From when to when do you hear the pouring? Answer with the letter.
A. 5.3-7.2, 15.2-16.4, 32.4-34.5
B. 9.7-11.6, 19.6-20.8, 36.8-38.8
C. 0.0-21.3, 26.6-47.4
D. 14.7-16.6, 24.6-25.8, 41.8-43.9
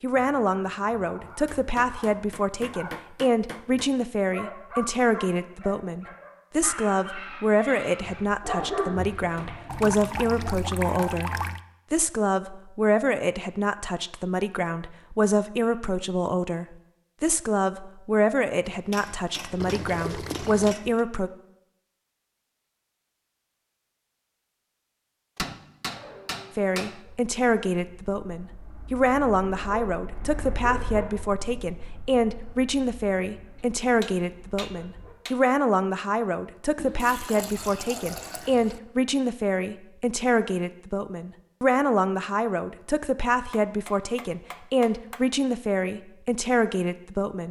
B.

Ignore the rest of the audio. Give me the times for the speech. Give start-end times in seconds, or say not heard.
0.0-21.3, 26.6-47.4.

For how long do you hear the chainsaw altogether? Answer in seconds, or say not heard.
not heard.